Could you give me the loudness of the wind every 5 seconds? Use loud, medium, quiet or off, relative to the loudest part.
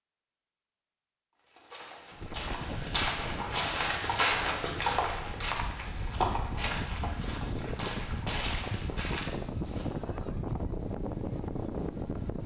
medium, loud, loud.